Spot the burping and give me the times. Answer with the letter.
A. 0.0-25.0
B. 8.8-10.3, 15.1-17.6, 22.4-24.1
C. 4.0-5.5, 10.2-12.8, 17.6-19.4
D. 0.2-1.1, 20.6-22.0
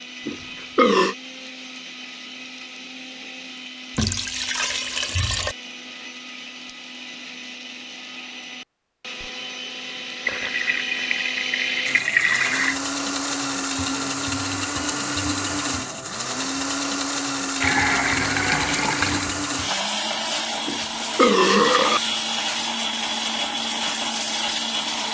D.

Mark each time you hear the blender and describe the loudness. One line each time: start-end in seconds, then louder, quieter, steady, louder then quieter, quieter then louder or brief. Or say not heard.
0.0-25.0 louder.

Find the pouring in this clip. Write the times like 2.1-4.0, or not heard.
4.0-5.5, 10.2-12.8, 17.6-19.4.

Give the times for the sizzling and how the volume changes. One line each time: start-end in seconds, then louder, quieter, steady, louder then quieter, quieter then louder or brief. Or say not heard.
not heard.